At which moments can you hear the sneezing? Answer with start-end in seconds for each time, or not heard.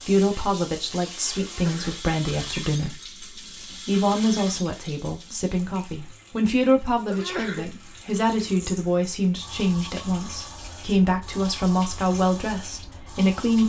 1.4-2.0, 7.0-7.8.